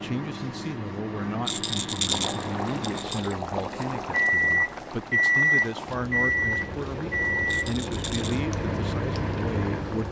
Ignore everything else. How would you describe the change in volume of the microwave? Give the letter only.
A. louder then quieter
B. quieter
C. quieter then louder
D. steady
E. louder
A.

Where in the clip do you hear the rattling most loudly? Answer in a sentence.
The loudest moment of the rattling is at 2 seconds.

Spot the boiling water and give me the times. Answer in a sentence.
The boiling water can be heard from 2.0 to 10.0 s.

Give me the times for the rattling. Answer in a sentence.
The rattling can be heard from 1.4 to 3.4 s and from 7.5 to 8.4 s.